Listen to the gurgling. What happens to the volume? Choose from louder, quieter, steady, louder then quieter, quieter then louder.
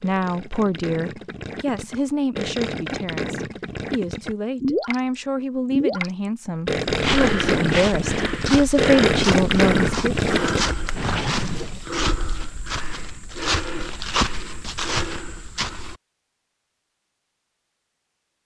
louder.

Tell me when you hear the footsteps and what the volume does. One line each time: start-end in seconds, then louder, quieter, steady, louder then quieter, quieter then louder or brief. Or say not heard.
6.8-15.9 steady.